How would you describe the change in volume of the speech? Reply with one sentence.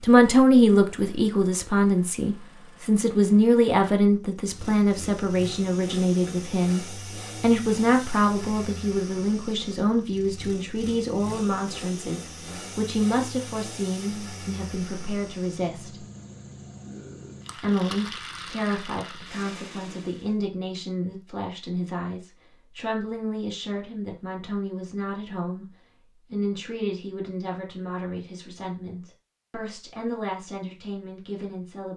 The volume of the speech goes down.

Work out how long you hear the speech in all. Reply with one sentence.
The speech can be heard for 30 seconds in total.